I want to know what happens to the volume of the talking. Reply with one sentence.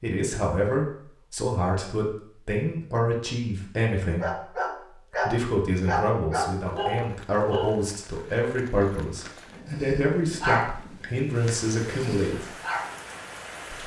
The volume of the talking stays about the same.